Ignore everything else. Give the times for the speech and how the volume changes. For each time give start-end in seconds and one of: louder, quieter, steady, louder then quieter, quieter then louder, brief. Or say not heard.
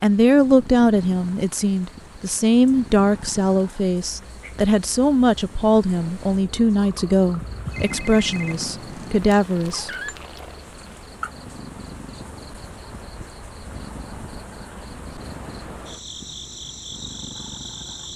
0.0-9.9 steady.